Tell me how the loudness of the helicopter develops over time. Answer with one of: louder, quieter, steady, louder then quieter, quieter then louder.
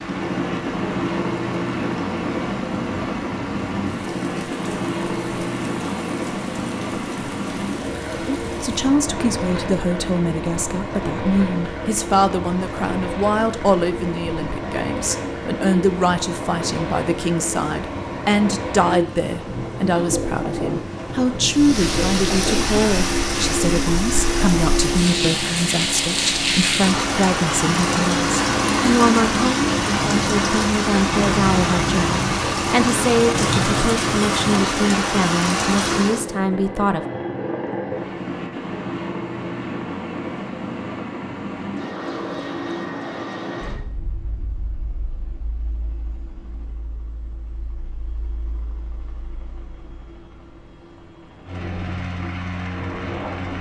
quieter.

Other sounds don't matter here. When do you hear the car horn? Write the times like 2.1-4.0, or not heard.
not heard.